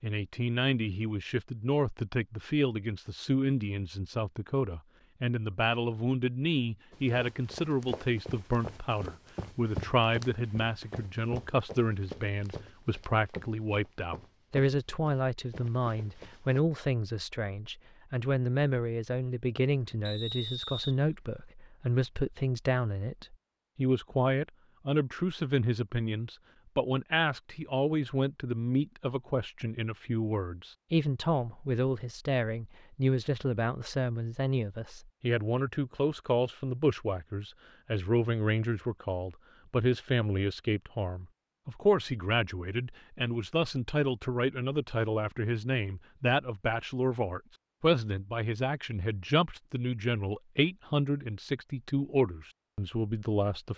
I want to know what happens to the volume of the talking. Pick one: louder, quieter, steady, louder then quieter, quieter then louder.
steady.